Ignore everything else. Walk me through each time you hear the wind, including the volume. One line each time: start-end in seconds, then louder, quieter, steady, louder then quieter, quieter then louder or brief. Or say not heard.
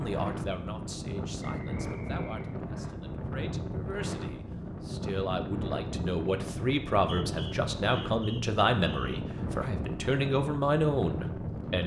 0.0-11.8 steady.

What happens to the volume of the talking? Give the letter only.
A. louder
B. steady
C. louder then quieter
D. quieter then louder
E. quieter
A.